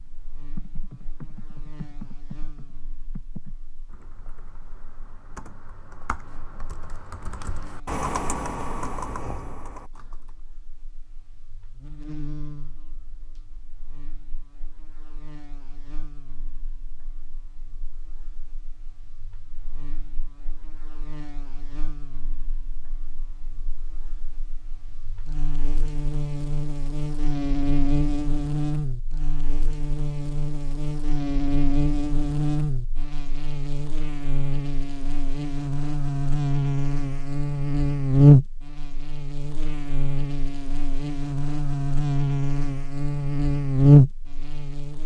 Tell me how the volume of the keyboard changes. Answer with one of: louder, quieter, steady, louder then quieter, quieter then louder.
quieter then louder.